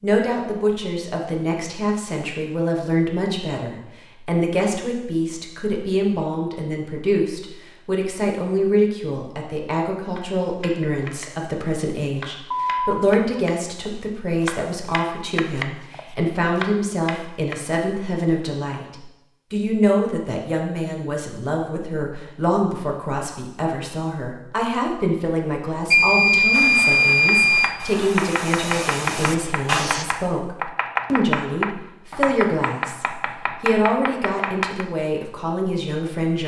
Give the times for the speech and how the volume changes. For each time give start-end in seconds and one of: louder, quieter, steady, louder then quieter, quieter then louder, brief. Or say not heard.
0.0-36.4 steady.